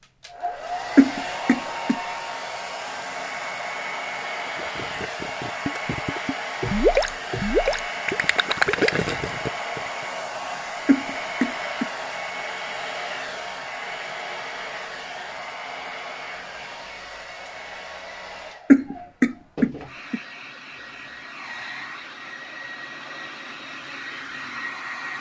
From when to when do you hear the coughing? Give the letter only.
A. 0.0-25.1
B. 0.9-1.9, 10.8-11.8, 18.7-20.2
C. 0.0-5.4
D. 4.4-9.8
B.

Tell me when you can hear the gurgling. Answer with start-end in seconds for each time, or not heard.
4.4-9.8.